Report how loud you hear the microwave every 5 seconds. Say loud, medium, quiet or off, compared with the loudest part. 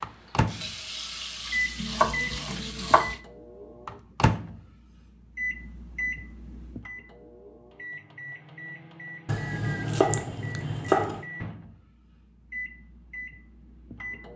loud, medium, medium.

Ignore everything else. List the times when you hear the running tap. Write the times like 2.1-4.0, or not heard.
0.0-3.2.